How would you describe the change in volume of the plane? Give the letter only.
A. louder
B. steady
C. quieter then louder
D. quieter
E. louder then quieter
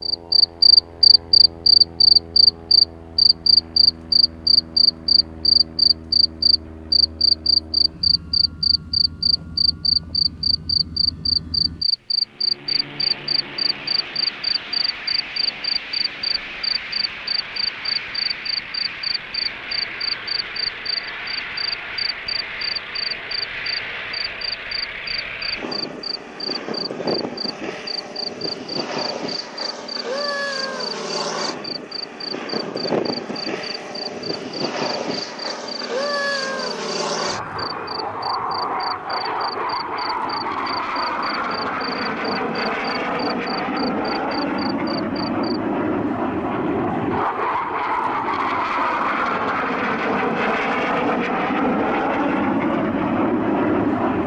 A.